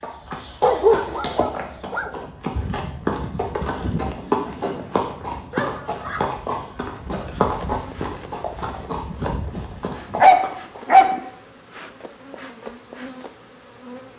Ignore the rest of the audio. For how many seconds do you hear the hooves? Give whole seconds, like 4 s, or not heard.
11 s.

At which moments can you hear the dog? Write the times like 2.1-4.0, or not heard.
0.6-2.1, 5.5-7.4, 10.2-11.2.